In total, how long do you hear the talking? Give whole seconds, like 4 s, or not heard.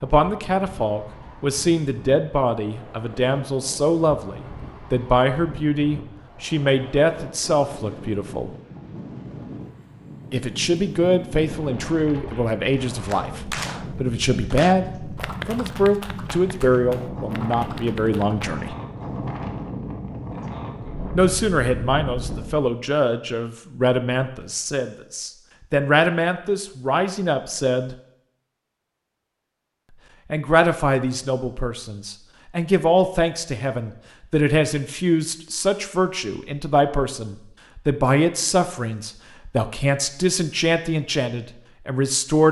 36 s.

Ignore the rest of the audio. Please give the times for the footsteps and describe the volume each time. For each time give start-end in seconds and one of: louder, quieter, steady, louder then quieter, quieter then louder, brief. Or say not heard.
not heard.